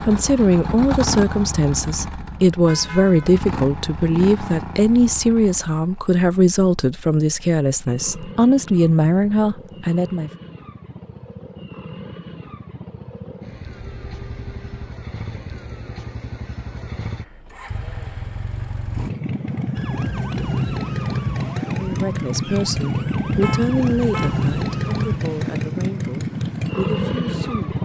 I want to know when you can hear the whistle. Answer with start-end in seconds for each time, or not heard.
not heard.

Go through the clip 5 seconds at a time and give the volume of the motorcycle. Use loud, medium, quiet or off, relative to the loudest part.
medium, quiet, quiet, medium, loud, loud.